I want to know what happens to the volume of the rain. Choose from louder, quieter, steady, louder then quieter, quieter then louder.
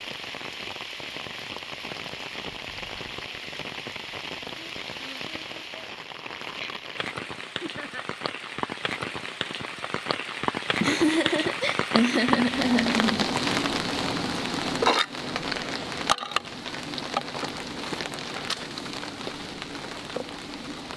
louder then quieter.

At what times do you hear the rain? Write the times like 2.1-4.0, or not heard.
0.0-20.9.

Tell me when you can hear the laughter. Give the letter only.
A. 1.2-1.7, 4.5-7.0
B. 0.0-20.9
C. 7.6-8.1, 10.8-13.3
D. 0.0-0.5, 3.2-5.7
C.